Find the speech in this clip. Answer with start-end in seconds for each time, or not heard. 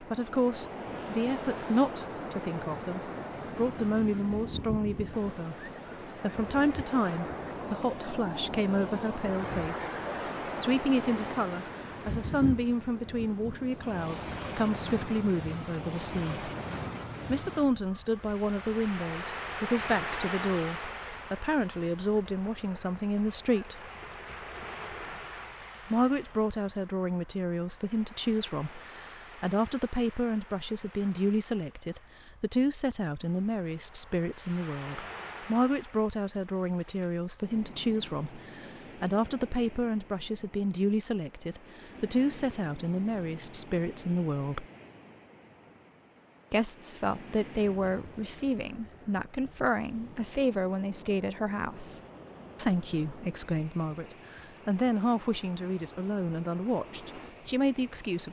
0.0-16.4, 17.2-23.9, 25.9-44.6, 46.5-58.2.